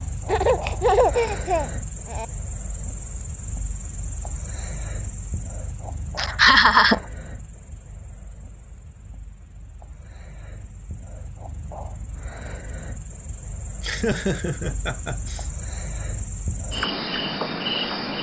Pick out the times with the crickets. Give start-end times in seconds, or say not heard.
0.0-18.1.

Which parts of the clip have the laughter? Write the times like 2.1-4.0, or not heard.
0.2-2.2, 6.2-7.0, 13.8-15.5.